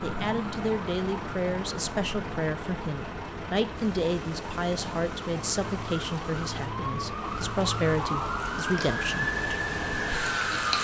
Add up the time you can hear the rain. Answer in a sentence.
You can hear the rain for 7 seconds altogether.